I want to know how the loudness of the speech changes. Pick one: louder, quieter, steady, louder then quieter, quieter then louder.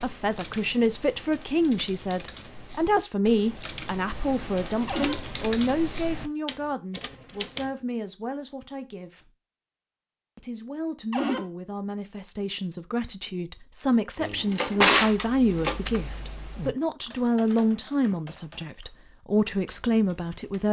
quieter then louder.